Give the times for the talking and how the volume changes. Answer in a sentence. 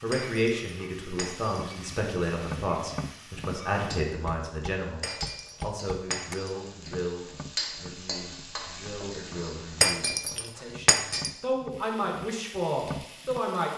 The talking can be heard from 0.0 to 13.7 s, getting quieter then louder.